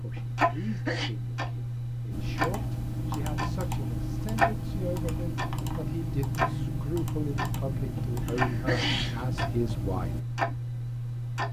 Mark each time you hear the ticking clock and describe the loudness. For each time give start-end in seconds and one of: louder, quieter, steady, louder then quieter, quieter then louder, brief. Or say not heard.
0.0-11.4 steady.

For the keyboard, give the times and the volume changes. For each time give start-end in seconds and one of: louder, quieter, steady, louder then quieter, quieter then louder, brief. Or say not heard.
2.1-10.2 steady.